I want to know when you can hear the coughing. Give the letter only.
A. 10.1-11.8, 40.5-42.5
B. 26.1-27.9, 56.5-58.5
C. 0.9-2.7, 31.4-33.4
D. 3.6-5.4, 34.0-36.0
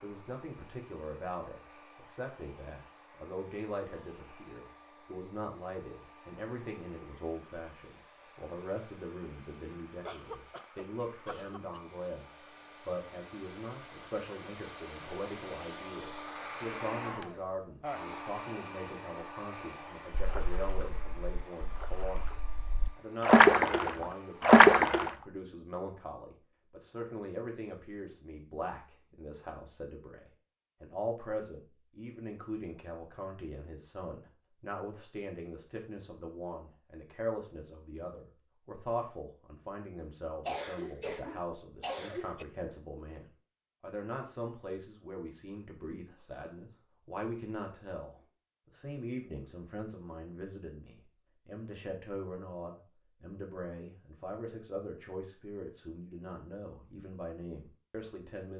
A.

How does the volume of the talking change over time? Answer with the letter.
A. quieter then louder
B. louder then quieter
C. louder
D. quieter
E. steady
E.